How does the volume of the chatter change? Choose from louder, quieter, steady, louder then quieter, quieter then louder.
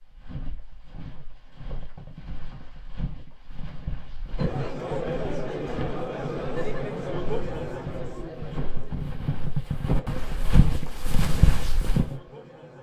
quieter.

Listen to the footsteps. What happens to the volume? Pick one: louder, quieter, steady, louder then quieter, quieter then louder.
louder.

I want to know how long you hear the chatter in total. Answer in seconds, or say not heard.
8 s.